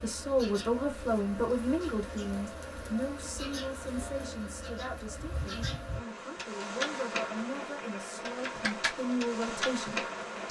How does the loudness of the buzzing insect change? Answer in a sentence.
The loudness of the buzzing insect goes up.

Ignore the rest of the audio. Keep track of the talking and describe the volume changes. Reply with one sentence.
The loudness of the talking goes down, then up.